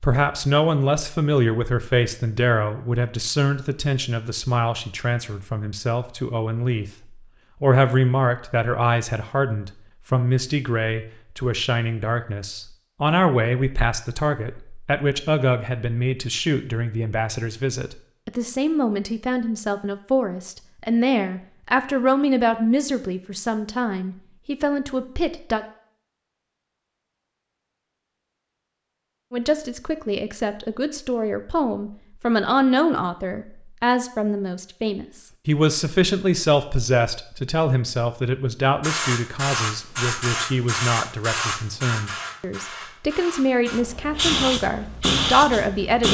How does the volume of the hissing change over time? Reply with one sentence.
The volume of the hissing goes down, then up.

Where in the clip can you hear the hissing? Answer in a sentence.
The hissing can be heard from 38.8 to 46.0 s.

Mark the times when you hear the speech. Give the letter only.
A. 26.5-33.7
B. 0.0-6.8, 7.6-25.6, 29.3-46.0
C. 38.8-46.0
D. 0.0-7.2
B.